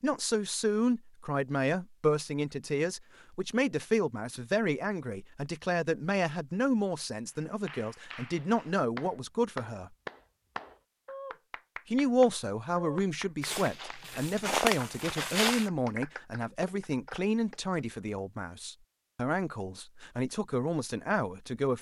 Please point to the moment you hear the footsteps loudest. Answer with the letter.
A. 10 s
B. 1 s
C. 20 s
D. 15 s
D.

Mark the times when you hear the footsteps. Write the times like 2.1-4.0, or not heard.
13.4-15.7.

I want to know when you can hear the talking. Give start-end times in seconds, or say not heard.
0.0-9.9, 11.9-21.7.